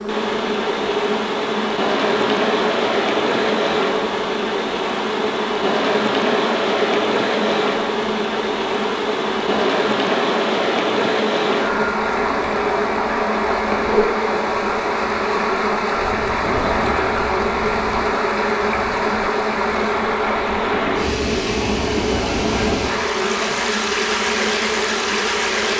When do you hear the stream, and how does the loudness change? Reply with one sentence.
You can hear the stream from 0.0 to 25.7 s, at a steady volume.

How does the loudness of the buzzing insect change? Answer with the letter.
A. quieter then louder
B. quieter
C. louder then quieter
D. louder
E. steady
E.